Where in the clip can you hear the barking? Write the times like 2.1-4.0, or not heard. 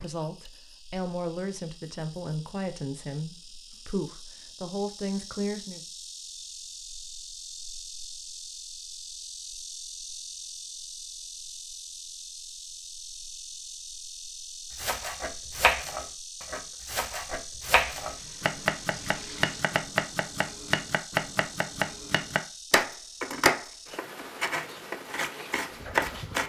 not heard.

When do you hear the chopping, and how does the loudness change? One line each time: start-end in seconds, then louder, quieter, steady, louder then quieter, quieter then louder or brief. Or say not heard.
14.8-26.4 steady.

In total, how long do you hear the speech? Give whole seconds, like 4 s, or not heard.
6 s.